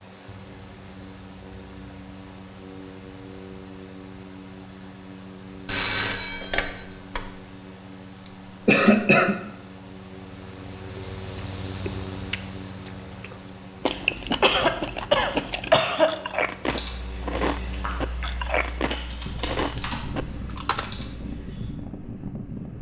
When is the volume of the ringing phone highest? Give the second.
6 s.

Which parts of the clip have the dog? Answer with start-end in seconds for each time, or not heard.
not heard.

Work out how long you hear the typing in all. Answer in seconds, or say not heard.
5 s.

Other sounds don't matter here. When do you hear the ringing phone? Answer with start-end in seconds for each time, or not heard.
5.7-7.3.